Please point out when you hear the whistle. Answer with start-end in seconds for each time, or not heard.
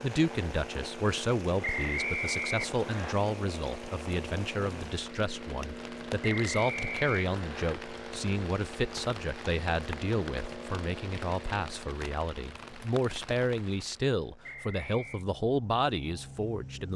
1.6-3.1, 6.2-7.8, 14.4-15.2.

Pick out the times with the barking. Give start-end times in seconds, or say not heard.
not heard.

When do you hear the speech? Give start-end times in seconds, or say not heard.
0.0-16.9.